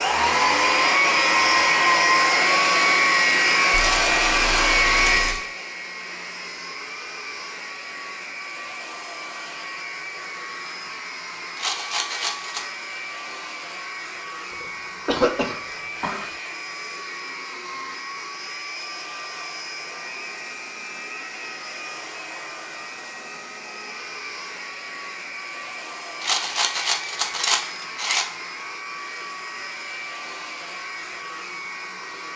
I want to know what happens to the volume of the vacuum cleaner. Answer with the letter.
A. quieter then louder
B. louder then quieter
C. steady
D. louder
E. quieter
E.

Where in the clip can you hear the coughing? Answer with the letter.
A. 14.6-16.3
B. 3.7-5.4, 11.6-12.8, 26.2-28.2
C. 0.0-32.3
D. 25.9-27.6
A.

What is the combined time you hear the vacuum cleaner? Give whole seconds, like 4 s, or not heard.
32 s.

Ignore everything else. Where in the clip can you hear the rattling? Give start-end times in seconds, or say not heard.
3.7-5.4, 11.6-12.8, 26.2-28.2.